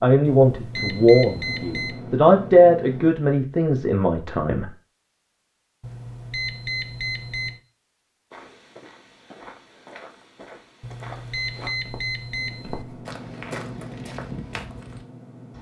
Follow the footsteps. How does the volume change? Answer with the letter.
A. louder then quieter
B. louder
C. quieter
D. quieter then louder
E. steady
B.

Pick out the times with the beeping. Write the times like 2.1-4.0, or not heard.
0.2-2.0, 5.8-7.6, 10.8-12.8.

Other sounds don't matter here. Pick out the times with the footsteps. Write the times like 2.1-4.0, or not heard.
8.3-15.1.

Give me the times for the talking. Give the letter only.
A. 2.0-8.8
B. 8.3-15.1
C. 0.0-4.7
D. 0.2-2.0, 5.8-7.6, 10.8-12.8
C.